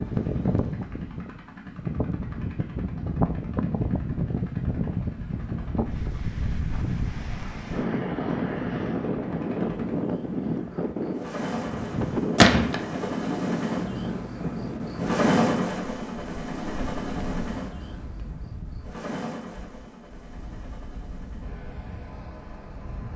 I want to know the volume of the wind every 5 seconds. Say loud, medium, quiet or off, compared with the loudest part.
loud, loud, loud, medium, quiet.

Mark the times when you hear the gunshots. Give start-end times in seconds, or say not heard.
12.3-12.8.